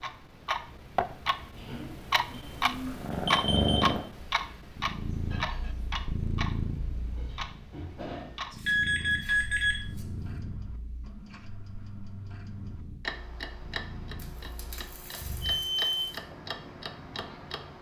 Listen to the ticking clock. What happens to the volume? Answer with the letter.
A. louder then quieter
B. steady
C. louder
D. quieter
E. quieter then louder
D.